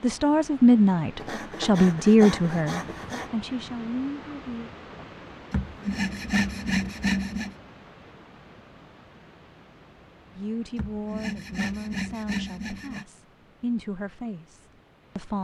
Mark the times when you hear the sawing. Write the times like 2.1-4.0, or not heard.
1.1-3.3, 5.5-7.5, 10.8-13.1.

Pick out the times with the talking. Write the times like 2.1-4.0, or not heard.
0.0-4.7, 10.3-15.3.